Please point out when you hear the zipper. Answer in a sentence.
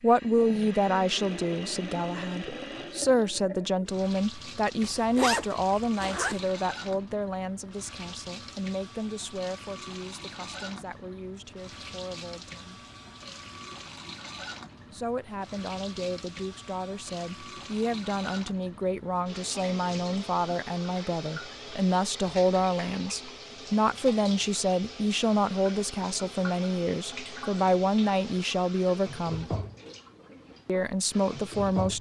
You can hear the zipper from 4.8 to 6.4 s.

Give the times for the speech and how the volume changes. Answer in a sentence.
The speech can be heard from 0.0 to 12.8 s, getting quieter; from 14.9 to 29.6 s, getting louder; and briefly from 30.6 to 31.9 s.